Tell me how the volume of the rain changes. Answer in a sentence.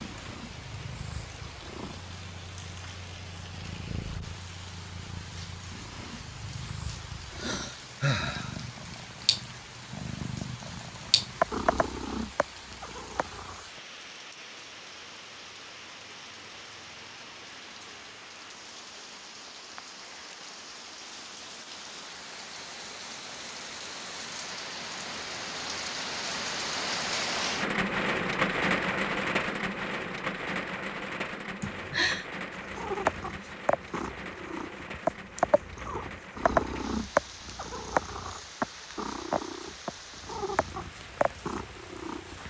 The loudness of the rain goes up, then down.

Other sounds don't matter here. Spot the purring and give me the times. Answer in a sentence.
You can hear the purring from 0.0 to 13.7 s and from 32.6 to 42.4 s.